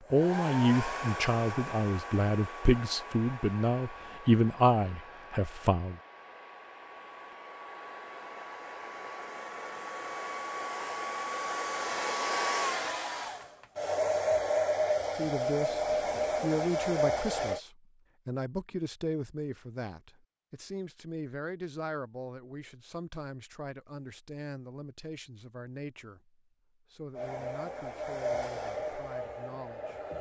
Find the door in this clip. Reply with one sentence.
The door can't be heard in this clip.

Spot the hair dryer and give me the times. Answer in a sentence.
You can hear the hair dryer from 0.1 to 17.6 s and from 27.1 to 30.1 s.